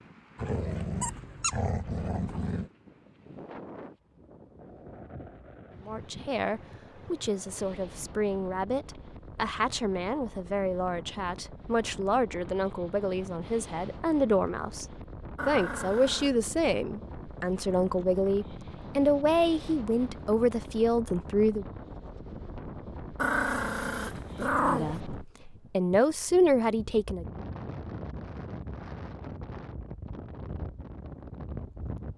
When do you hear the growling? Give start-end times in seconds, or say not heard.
0.3-2.7, 15.3-16.4, 23.1-25.0.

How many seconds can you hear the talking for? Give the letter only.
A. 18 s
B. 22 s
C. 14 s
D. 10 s
A.